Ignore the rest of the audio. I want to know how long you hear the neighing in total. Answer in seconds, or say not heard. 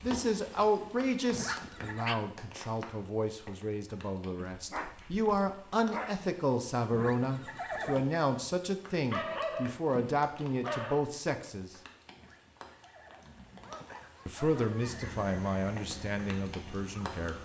4 s.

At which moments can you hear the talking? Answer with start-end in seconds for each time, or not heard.
0.0-11.8, 14.2-17.4.